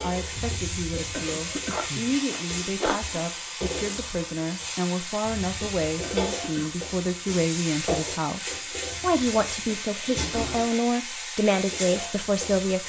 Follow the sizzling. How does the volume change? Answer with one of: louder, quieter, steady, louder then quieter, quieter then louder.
steady.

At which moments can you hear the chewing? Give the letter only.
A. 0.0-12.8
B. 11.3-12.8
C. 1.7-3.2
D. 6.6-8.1
C.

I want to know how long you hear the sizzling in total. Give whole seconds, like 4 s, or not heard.
13 s.